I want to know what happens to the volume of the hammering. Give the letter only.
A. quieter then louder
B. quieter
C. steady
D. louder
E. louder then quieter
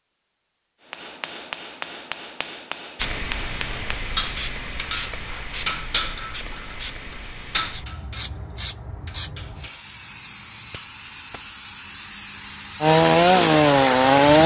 B.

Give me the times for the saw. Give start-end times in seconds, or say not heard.
12.8-14.4.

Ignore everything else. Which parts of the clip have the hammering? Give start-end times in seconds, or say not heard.
0.9-11.5.